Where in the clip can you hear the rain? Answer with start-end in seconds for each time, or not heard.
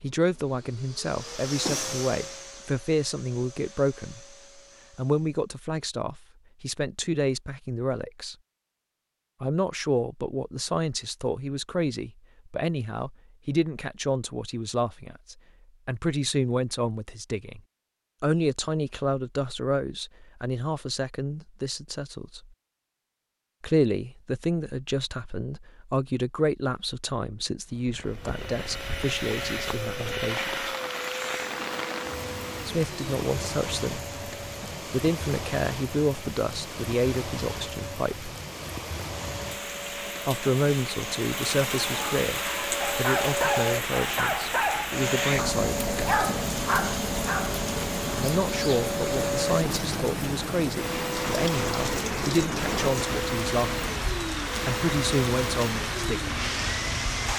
27.7-57.3.